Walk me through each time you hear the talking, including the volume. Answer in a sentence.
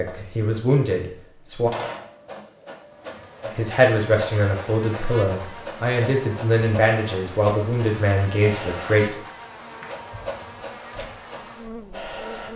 You can hear the talking briefly from 0.0 to 1.7 s; and from 3.5 to 9.2 s, at a steady volume.